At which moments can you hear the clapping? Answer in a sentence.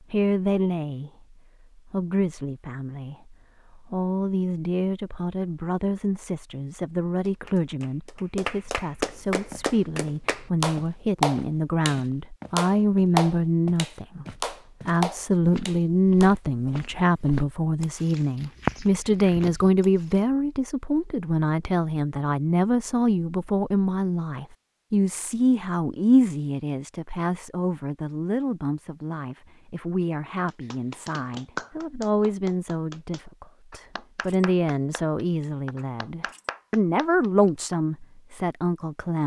You can hear the clapping from 7.2 to 16.4 s and from 30.4 to 37.8 s.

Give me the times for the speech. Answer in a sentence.
The speech can be heard from 0.0 to 14.2 s and from 14.8 to 39.2 s.